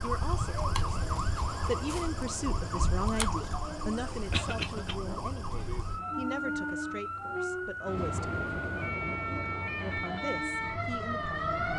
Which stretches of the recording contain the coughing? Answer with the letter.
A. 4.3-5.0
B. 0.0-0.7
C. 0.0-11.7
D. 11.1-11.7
A.